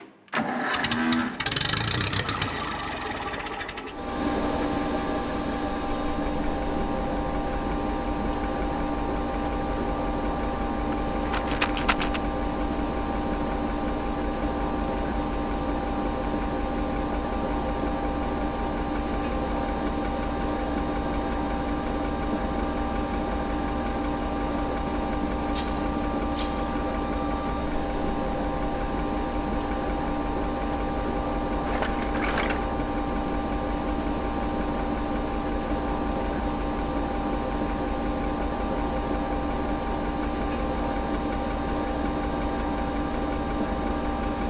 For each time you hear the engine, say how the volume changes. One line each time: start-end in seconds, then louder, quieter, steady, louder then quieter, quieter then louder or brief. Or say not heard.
0.0-44.4 steady.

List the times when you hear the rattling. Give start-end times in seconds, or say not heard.
10.7-12.2, 25.5-26.7, 31.6-32.7.